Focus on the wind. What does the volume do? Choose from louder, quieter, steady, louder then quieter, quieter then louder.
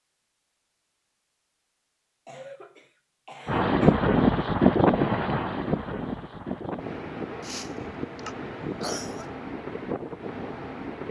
quieter.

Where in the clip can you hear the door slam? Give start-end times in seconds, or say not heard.
not heard.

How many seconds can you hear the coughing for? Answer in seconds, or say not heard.
4 s.